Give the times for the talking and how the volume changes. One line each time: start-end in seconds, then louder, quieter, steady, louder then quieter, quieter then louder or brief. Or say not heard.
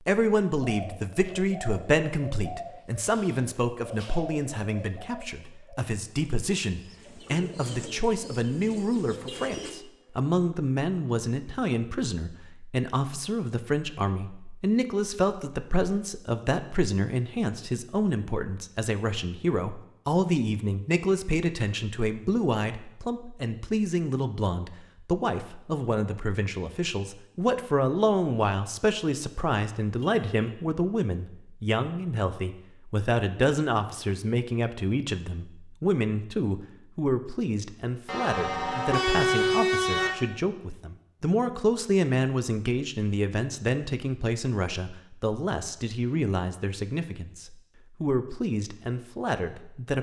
0.0-49.9 steady.